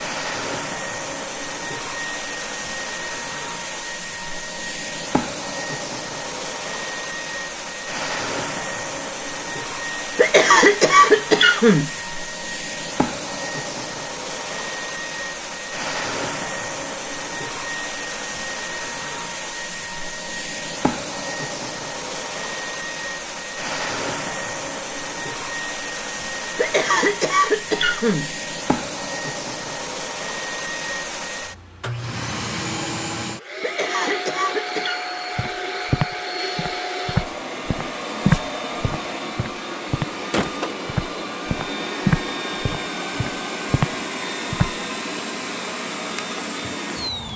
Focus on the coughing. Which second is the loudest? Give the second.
11 s.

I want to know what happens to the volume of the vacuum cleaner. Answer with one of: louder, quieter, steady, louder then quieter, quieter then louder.
steady.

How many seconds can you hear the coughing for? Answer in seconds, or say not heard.
5 s.